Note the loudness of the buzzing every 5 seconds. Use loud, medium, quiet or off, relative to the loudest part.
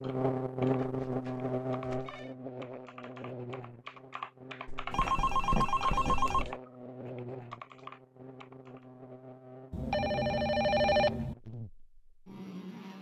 loud, medium, medium.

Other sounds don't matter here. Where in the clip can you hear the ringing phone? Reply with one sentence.
The ringing phone can be heard from 0.8 to 2.4 s, from 4.9 to 6.5 s and from 9.7 to 11.3 s.